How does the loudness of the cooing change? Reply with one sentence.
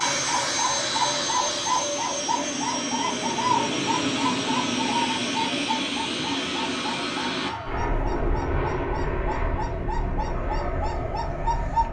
The loudness of the cooing goes down.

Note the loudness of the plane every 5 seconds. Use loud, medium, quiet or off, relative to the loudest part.
loud, loud, medium.